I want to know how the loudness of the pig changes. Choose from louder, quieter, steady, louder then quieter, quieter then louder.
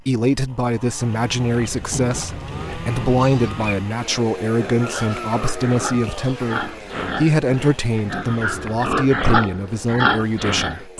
louder.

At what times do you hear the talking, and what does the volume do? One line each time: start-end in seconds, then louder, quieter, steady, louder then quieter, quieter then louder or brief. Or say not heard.
0.1-10.9 steady.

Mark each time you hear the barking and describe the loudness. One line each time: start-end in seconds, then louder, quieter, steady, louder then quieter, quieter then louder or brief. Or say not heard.
not heard.